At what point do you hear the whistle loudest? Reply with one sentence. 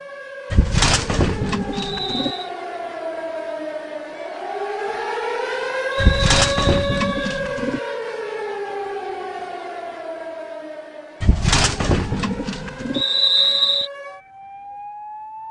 The loudest moment of the whistle is at 13 seconds.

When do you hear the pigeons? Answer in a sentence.
You can hear the pigeons from 0.5 to 2.4 s, from 6.0 to 7.8 s and from 11.2 to 13.1 s.